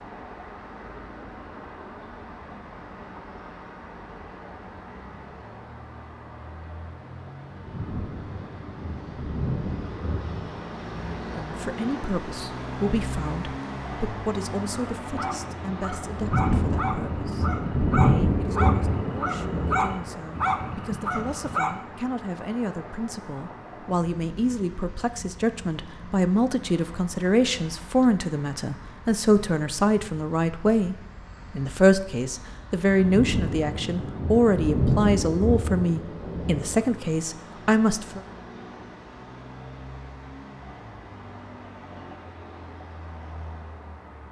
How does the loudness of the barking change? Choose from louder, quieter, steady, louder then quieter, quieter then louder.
louder.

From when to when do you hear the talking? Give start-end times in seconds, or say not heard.
11.2-38.2.